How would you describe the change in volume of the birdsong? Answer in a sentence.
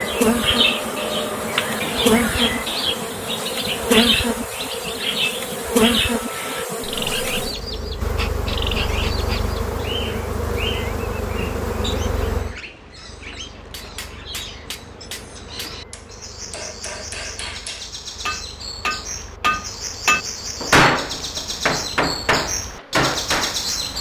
The volume of the birdsong goes down, then up.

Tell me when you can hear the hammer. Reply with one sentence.
The hammer can be heard from 13.6 to 23.6 s.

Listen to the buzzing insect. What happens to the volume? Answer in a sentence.
The loudness of the buzzing insect goes down.